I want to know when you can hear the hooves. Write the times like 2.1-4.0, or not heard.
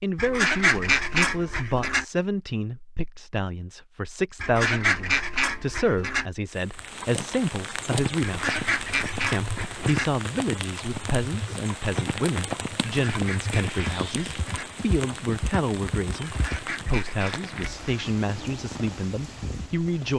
7.8-16.9.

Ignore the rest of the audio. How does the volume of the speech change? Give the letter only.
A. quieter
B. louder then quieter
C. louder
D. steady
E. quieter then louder
D.